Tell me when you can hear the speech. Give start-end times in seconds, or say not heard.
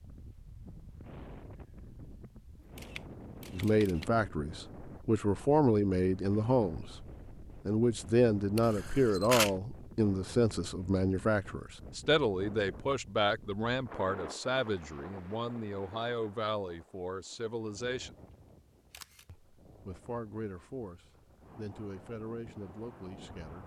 3.5-18.1, 19.2-23.6.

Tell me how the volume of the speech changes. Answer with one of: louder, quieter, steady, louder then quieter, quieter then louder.
quieter.